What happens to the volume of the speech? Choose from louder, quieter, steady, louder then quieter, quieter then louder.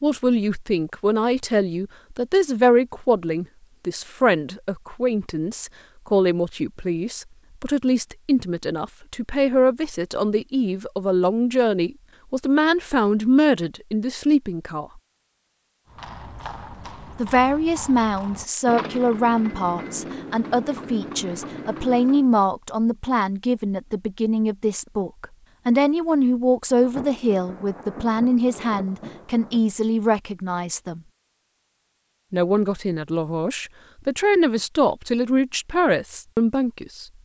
steady.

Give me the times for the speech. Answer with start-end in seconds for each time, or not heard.
0.0-14.8, 17.1-31.0, 32.3-37.0.